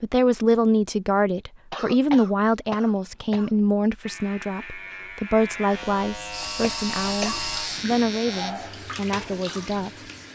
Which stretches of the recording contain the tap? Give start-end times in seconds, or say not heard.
6.3-10.3.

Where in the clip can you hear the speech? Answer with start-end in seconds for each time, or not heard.
0.0-10.1.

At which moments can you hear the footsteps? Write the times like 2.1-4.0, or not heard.
not heard.